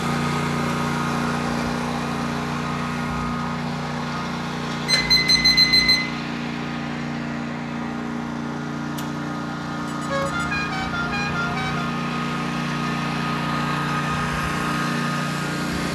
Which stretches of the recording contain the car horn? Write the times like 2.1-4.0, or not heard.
10.1-11.9.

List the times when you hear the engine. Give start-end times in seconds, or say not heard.
0.0-15.9.